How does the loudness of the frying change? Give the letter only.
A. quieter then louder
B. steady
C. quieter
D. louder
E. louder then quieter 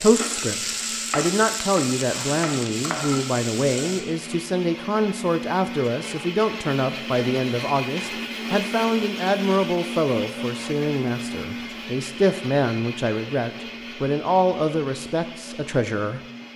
B.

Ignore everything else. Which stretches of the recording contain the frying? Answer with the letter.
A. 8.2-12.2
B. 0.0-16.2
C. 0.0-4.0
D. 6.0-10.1
C.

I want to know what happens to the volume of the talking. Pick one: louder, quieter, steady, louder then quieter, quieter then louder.
steady.